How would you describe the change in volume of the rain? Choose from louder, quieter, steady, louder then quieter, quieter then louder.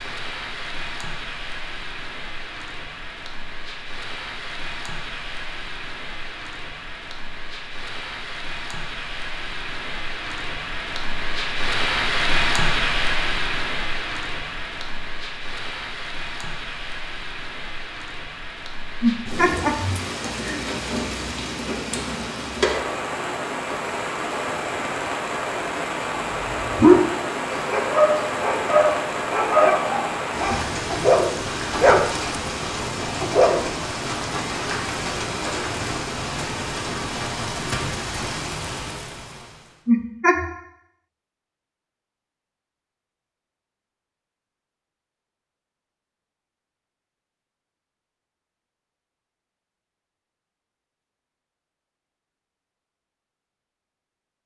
louder.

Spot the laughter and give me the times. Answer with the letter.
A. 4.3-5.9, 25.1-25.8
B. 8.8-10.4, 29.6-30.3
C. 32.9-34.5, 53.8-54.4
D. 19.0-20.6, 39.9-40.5
D.